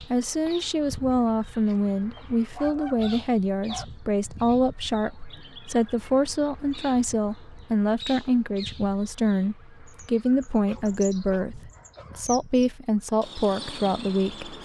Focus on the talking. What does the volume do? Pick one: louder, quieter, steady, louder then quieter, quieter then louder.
steady.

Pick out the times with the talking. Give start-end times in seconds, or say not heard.
0.0-14.6.